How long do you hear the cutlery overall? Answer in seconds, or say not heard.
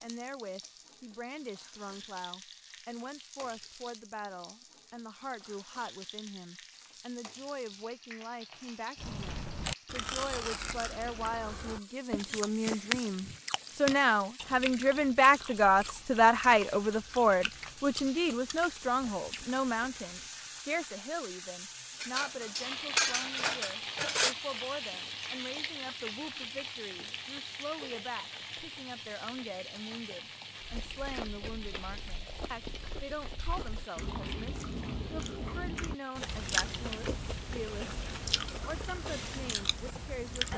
2 s.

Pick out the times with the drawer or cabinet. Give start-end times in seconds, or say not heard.
not heard.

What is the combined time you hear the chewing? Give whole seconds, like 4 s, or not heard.
21 s.